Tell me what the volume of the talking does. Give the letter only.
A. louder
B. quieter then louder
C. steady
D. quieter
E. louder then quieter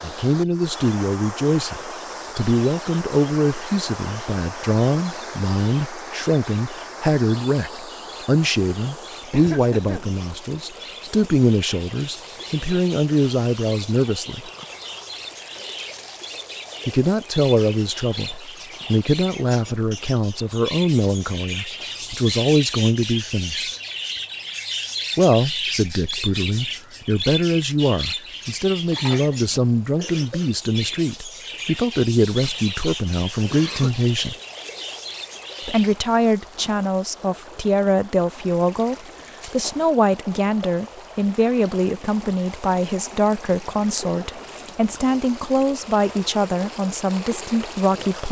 C.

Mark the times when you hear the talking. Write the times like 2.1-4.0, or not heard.
0.0-14.5, 16.9-23.8, 25.1-34.4, 35.6-48.2.